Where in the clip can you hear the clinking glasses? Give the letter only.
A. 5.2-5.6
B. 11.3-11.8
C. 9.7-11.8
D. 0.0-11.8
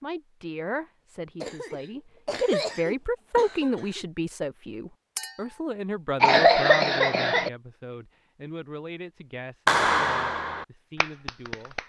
A.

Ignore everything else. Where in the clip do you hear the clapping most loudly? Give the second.
10 s.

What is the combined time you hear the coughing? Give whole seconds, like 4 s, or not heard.
4 s.